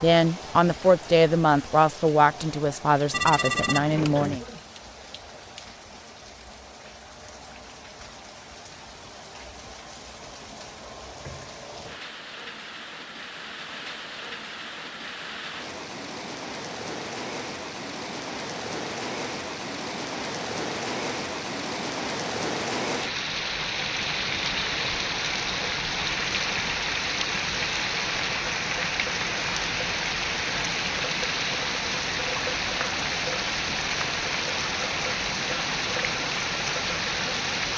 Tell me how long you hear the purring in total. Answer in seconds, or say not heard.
not heard.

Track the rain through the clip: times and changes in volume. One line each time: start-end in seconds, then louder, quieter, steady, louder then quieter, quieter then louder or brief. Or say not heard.
0.0-37.7 louder.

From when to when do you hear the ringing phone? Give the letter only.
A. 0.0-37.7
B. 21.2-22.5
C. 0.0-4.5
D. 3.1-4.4
D.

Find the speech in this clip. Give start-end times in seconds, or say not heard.
0.0-4.5.